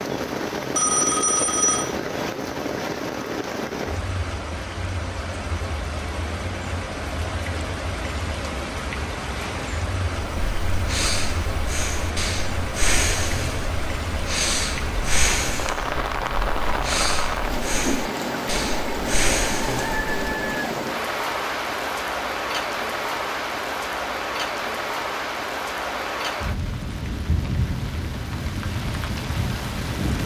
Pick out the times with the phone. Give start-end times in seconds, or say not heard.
0.8-1.9.